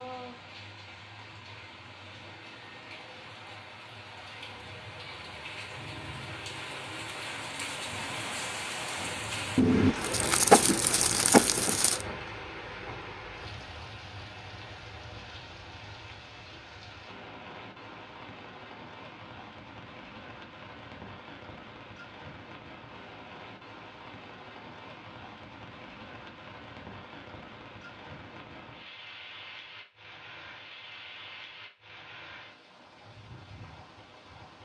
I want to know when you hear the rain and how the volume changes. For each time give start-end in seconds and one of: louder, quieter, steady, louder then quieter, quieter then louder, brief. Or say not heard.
0.0-34.6 louder then quieter.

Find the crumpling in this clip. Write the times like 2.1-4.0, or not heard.
9.6-12.1.